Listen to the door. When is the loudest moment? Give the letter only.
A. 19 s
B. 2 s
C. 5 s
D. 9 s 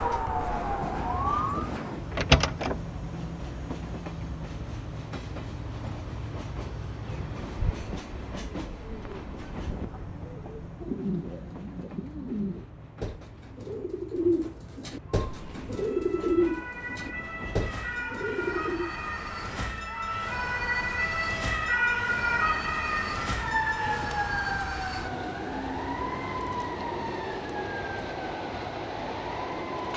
B.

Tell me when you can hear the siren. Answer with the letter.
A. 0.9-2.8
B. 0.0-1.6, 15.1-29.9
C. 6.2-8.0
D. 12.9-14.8
B.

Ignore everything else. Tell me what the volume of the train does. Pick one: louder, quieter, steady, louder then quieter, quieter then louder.
quieter then louder.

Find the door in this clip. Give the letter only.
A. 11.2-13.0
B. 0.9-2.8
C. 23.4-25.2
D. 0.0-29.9
B.